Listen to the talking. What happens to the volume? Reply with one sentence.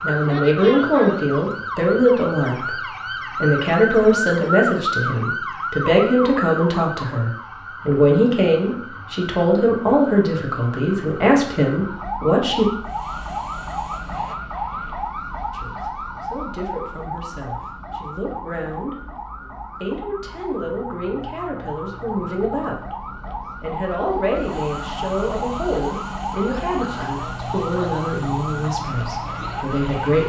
The volume of the talking goes down.